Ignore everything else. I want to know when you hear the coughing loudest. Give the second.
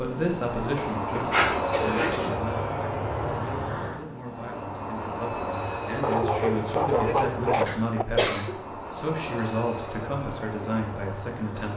8 s.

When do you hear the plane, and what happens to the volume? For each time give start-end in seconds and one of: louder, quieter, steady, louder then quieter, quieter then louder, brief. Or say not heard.
0.0-11.7 quieter.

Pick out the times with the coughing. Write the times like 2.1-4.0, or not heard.
1.7-2.3, 7.7-8.6.